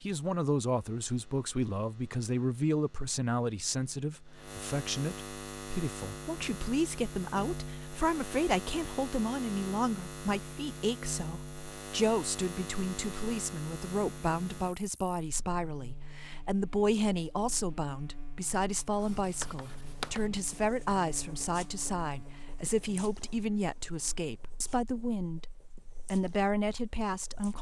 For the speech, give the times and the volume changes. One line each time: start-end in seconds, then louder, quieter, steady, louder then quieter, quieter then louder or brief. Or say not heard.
0.0-27.5 steady.